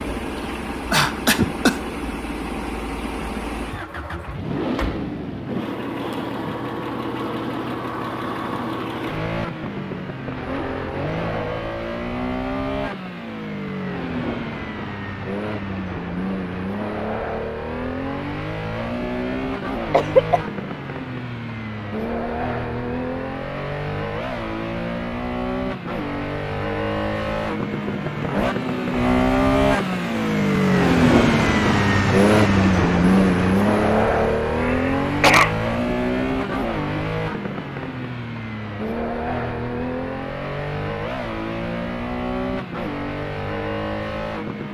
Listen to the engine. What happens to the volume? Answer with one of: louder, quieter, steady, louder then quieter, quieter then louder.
louder then quieter.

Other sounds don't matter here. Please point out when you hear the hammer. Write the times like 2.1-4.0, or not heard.
not heard.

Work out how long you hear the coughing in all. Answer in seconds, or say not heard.
2 s.